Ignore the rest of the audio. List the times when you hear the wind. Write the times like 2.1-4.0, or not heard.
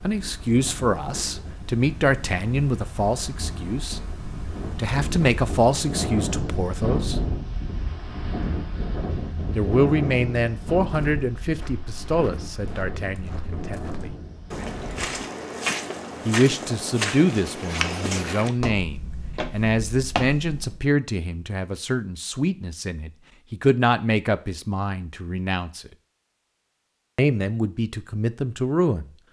0.0-15.2.